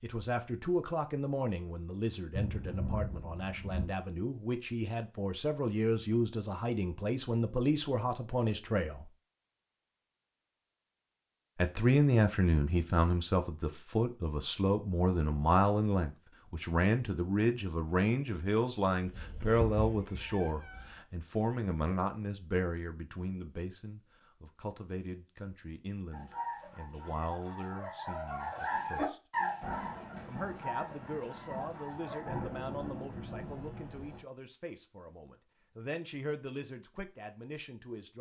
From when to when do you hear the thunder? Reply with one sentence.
The thunder can be heard from 2.4 to 3.9 s and from 29.6 to 34.2 s.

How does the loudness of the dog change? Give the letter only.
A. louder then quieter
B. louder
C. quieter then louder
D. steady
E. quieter
A.